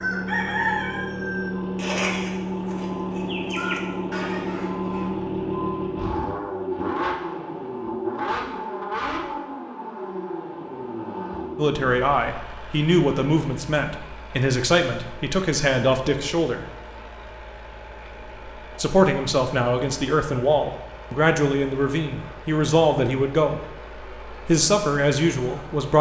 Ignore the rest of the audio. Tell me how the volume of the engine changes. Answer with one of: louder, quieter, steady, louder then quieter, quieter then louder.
quieter.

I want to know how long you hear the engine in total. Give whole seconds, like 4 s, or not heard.
26 s.